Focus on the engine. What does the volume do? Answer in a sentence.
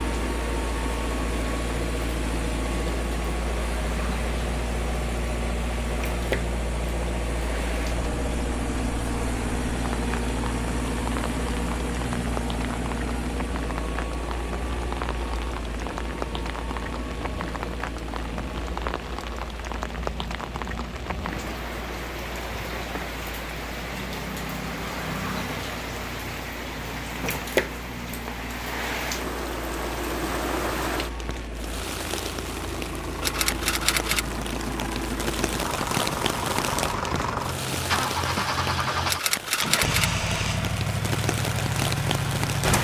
The volume of the engine goes down, then up.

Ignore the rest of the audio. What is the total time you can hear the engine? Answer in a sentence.
You can hear the engine for 43 seconds altogether.